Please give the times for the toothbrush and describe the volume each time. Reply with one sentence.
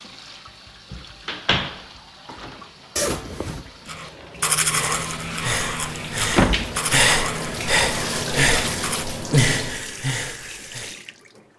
The toothbrush can be heard from 3.9 to 9.1 s, getting quieter.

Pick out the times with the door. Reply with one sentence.
The door can be heard from 0.9 to 1.8 s and from 6.3 to 6.8 s.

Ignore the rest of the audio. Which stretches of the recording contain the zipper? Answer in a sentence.
You can hear the zipper from 3.0 to 3.6 s.